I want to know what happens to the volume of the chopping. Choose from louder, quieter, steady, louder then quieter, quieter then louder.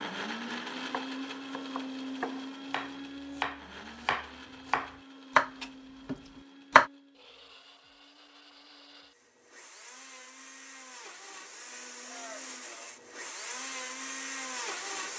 louder then quieter.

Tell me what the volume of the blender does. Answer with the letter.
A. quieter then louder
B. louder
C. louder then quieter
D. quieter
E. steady
A.